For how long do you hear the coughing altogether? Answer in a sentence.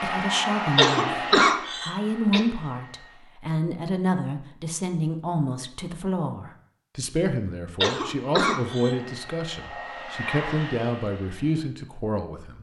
The coughing can be heard for 3 seconds in total.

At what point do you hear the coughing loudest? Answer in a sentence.
The loudest moment of the coughing is at 1 second.